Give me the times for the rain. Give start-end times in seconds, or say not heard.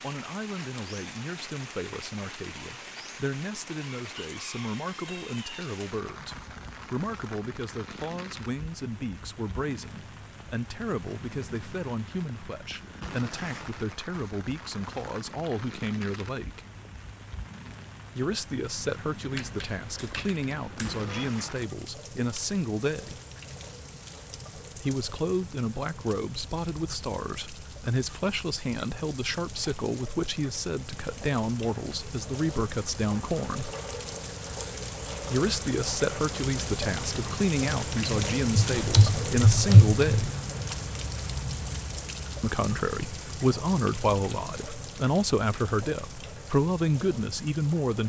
0.0-48.0.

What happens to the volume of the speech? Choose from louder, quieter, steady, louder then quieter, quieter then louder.
louder.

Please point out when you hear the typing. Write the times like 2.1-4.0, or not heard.
19.4-21.3, 38.5-40.3.